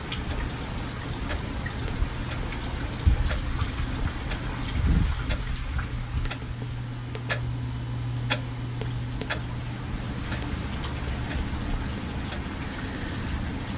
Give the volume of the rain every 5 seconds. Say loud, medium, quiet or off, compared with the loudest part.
loud, medium, loud.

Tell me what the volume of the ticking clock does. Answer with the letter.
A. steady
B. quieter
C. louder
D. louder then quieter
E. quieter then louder
D.